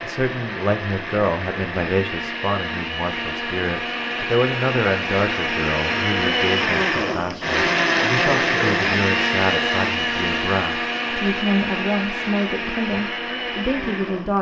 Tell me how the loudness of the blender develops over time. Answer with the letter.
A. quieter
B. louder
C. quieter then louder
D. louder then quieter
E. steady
D.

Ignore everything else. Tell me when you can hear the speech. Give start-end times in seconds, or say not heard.
0.0-14.3.